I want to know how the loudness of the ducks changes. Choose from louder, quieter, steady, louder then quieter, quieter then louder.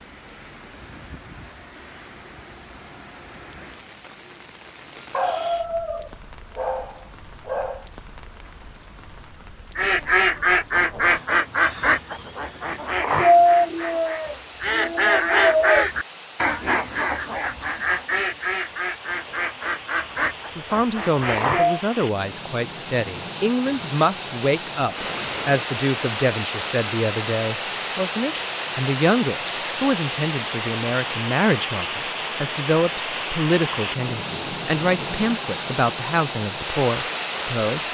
quieter.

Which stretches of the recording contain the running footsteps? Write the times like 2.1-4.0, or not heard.
not heard.